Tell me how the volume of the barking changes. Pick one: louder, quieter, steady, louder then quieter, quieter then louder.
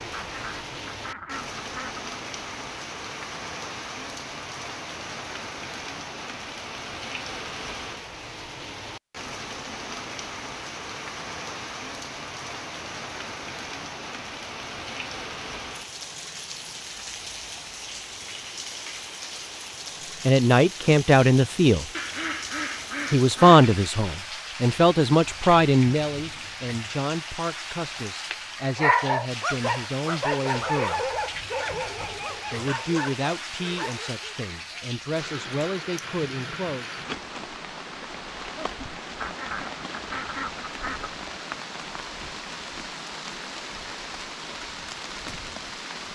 quieter.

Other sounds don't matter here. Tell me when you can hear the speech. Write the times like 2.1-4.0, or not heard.
20.2-21.9, 23.1-31.1, 32.5-36.9.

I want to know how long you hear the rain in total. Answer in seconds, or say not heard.
46 s.